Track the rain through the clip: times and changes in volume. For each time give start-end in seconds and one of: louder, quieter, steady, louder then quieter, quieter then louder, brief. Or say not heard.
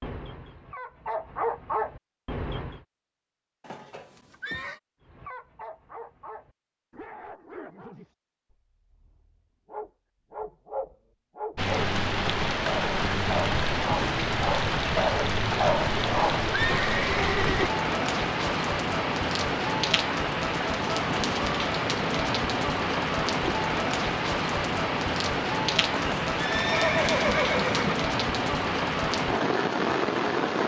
11.6-30.6 steady.